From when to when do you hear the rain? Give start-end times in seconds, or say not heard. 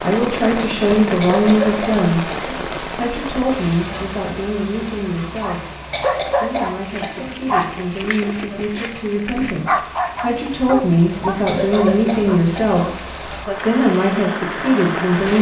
0.0-15.3.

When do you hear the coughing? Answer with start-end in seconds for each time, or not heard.
1.2-2.7, 5.9-7.4, 11.4-12.8.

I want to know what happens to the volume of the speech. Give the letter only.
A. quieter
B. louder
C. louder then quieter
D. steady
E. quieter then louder
E.